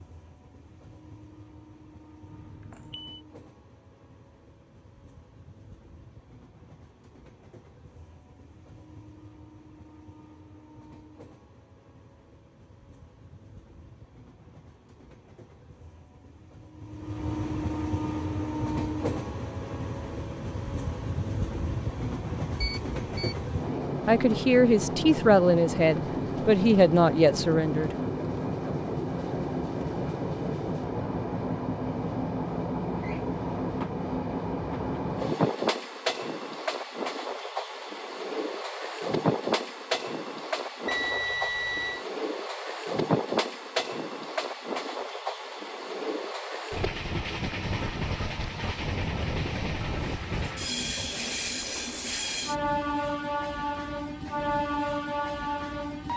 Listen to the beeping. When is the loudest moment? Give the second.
41 s.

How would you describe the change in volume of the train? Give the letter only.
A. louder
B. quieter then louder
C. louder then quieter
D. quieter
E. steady
A.